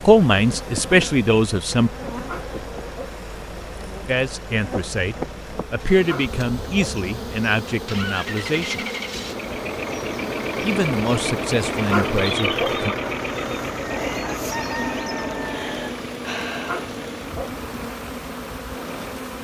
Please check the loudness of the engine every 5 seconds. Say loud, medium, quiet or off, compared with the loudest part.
quiet, medium, loud, medium.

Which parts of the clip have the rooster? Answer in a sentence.
The rooster can be heard from 13.9 to 15.9 s.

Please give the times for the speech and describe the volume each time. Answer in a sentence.
You can hear the speech briefly from 0.0 to 1.9 s; from 4.0 to 8.8 s, getting louder then quieter; and briefly from 10.6 to 12.9 s.